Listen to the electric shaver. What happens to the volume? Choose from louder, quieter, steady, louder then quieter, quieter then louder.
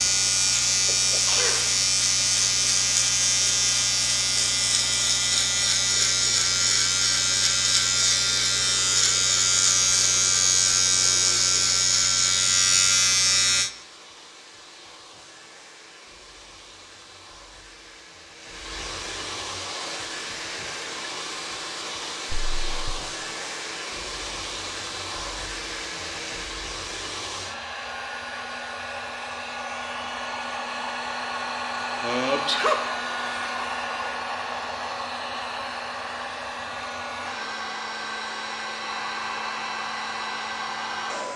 steady.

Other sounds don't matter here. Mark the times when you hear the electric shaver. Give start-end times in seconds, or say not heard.
0.0-13.7.